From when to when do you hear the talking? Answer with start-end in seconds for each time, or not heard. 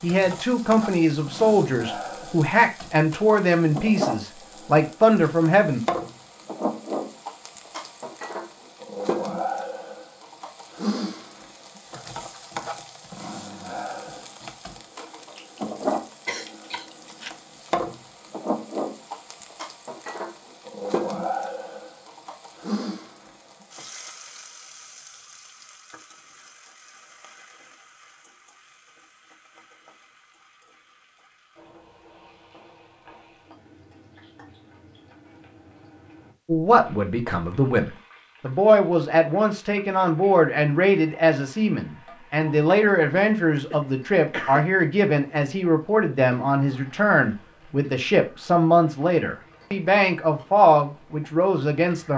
0.0-5.8, 36.5-52.1.